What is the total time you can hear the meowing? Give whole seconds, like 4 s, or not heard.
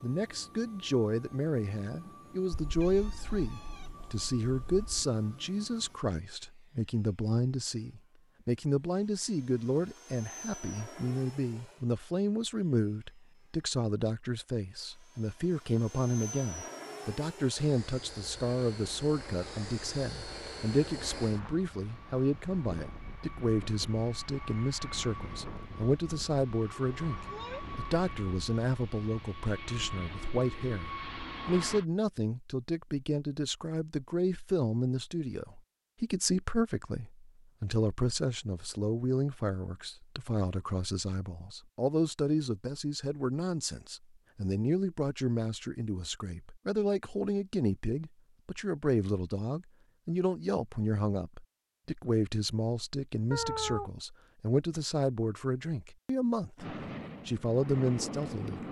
4 s.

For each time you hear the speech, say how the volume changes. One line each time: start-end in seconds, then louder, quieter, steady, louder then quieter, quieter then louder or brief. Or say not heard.
0.0-58.6 steady.